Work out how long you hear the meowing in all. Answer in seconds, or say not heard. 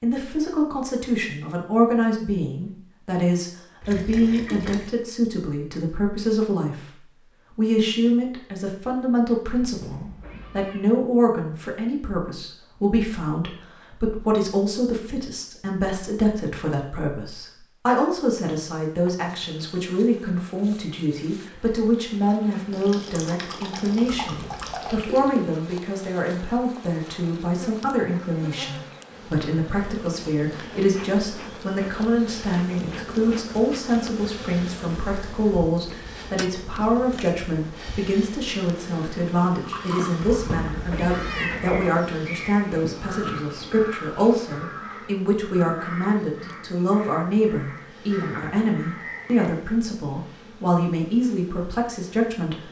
4 s.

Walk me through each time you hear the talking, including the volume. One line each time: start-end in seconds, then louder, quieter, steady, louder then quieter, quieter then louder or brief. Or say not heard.
0.0-52.6 steady.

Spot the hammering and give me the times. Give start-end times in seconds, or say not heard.
not heard.